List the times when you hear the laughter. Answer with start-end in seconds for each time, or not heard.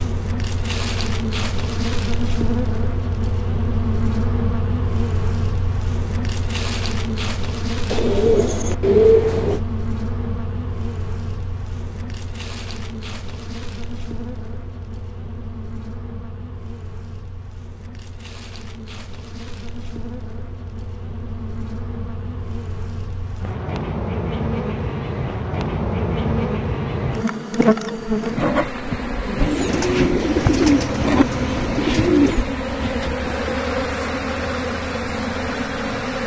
not heard.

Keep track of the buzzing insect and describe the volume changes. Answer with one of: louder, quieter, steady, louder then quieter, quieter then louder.
quieter then louder.